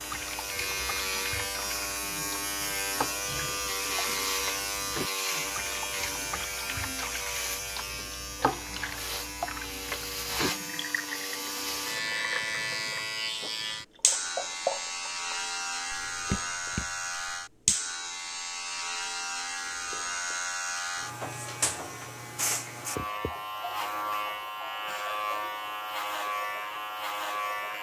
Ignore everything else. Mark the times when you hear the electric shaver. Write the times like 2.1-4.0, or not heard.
0.0-27.7.